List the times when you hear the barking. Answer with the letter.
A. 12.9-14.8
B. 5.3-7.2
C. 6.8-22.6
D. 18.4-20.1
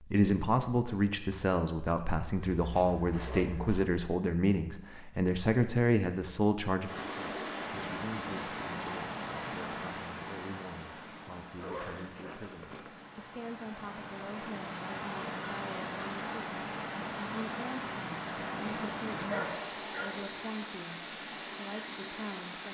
D.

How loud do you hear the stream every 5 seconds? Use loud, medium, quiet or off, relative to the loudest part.
off, loud, medium, loud, loud.